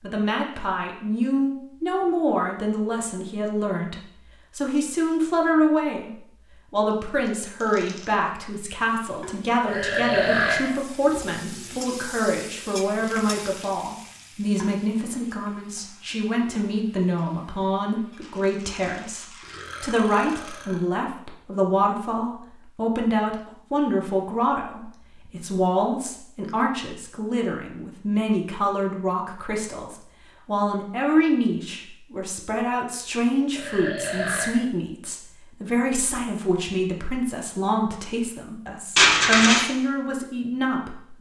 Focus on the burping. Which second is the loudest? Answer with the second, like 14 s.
10 s.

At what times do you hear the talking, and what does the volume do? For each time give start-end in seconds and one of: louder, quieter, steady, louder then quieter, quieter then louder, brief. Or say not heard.
0.0-41.1 steady.